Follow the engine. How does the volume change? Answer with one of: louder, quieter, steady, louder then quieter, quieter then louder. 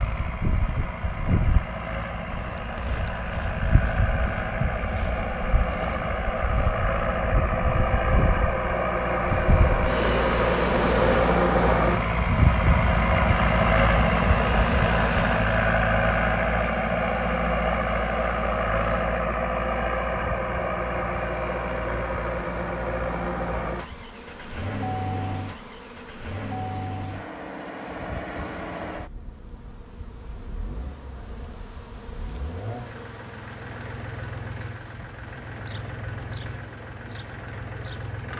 louder then quieter.